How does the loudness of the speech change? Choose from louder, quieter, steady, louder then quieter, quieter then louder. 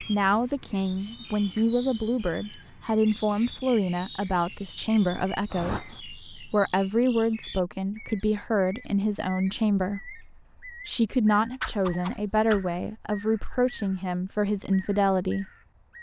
steady.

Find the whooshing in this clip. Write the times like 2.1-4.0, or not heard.
5.5-6.0, 11.6-12.7.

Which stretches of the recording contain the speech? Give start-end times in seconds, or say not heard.
0.0-15.4.